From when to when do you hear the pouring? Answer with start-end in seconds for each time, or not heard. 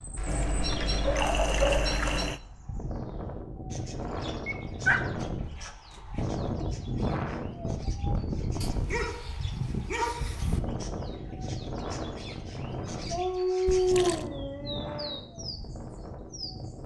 0.2-2.4, 13.7-14.2.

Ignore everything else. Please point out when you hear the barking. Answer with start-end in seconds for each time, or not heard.
0.1-2.4, 4.5-5.0, 8.6-10.6, 13.1-15.2.